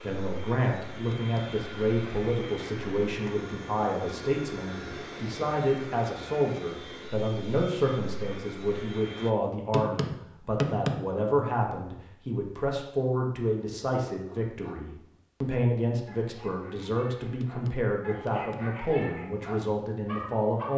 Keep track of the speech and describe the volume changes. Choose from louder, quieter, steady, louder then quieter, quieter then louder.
steady.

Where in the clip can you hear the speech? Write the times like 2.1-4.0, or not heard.
0.0-20.7.